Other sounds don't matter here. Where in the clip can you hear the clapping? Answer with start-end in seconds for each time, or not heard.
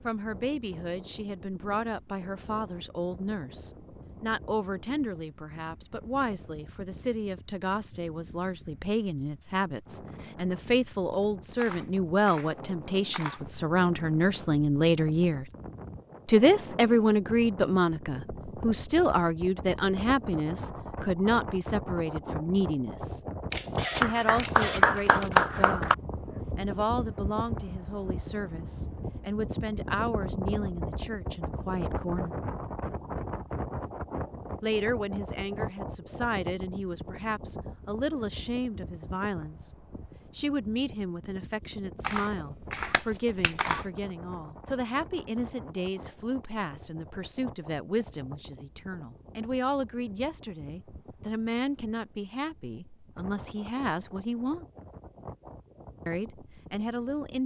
24.0-25.9, 42.9-43.5.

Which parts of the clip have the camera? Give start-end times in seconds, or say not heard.
11.6-13.4, 23.5-25.3, 42.0-43.9.